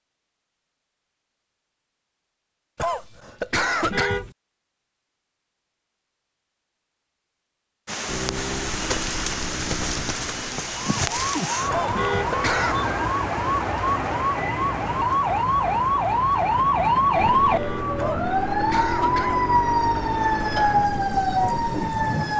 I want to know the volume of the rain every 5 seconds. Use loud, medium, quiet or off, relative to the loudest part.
off, loud, loud, medium, loud.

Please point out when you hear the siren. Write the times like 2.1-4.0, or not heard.
10.9-22.3.